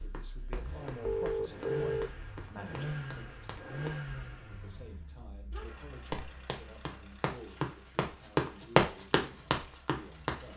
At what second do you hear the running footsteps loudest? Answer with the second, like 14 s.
9 s.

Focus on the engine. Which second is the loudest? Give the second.
3 s.